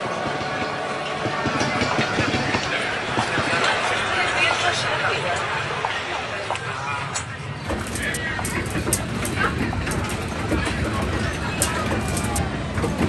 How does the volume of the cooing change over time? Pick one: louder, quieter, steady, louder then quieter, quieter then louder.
steady.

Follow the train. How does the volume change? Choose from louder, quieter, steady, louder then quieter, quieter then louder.
quieter then louder.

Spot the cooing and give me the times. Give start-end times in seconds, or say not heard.
7.6-13.0.